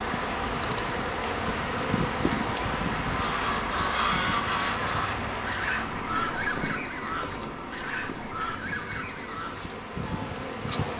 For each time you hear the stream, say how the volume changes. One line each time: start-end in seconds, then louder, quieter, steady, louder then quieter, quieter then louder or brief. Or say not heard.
0.0-10.9 quieter.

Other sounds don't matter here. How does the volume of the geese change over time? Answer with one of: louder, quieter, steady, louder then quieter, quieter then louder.
quieter.